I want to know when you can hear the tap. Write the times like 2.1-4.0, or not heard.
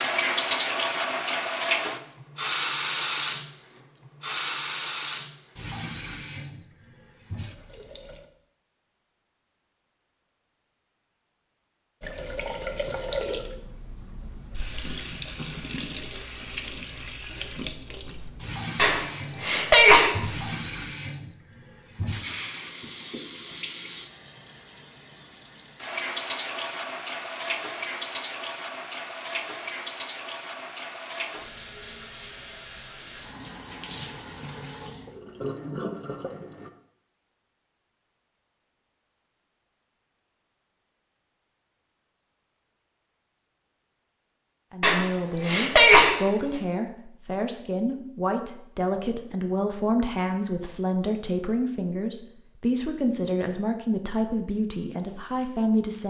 0.0-8.3, 12.0-36.7.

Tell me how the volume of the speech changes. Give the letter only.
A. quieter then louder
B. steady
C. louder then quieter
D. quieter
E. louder
B.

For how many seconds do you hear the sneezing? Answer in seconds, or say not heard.
3 s.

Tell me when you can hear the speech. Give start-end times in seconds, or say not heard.
44.7-56.0.